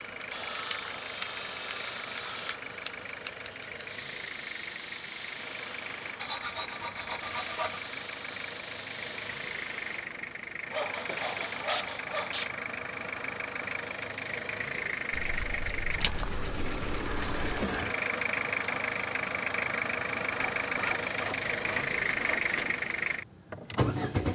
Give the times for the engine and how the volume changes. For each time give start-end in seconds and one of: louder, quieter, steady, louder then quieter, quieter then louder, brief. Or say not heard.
0.0-24.3 louder.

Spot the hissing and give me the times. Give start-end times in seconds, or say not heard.
0.0-12.6.